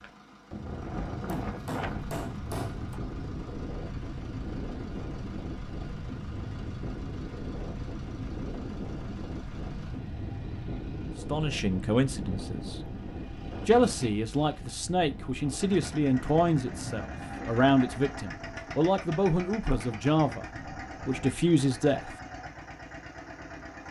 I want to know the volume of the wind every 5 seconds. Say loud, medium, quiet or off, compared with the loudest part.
loud, loud, loud, medium, off.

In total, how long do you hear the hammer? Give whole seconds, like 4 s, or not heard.
2 s.